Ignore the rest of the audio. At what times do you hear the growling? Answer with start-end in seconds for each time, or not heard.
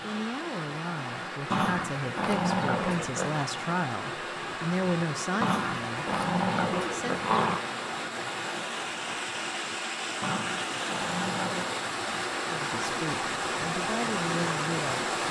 1.5-3.5, 5.4-7.7, 10.2-11.8.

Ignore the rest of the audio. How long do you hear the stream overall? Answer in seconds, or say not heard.
15 s.